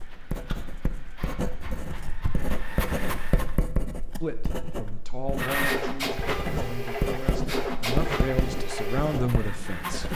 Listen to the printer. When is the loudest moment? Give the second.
6 s.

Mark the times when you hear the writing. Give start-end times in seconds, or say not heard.
0.0-10.1.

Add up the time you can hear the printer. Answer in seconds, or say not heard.
8 s.